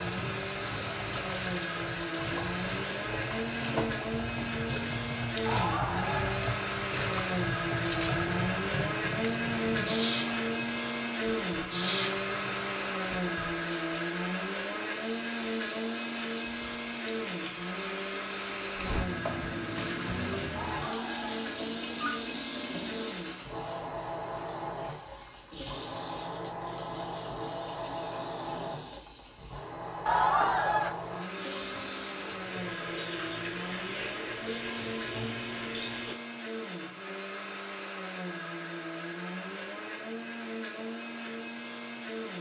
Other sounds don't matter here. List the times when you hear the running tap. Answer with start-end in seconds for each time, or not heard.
0.0-36.1.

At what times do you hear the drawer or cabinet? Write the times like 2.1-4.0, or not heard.
not heard.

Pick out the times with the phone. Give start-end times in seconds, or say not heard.
5.5-6.3, 20.6-22.2, 30.1-30.9.